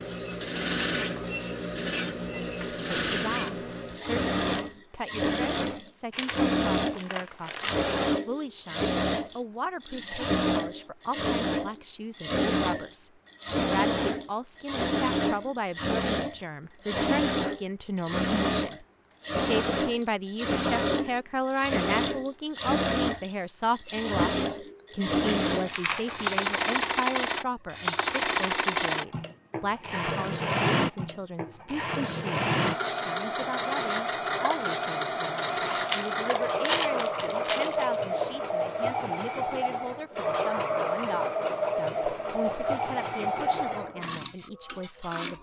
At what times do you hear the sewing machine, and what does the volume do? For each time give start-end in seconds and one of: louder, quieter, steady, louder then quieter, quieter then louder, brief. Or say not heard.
0.0-45.3 steady.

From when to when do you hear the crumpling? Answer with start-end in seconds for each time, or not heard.
6.1-7.9, 25.4-26.4, 35.4-38.0.